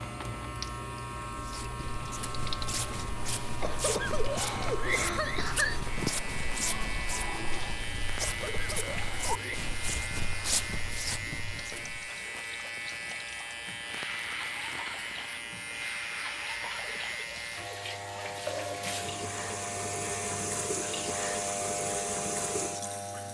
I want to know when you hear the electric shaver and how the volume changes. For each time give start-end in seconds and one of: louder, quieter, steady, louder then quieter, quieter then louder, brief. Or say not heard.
0.0-23.3 steady.